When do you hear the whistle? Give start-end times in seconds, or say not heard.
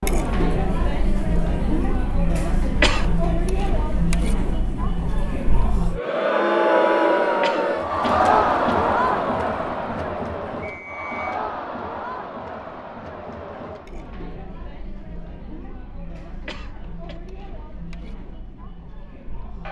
10.6-11.4.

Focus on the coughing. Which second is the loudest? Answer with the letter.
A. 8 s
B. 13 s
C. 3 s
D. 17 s
C.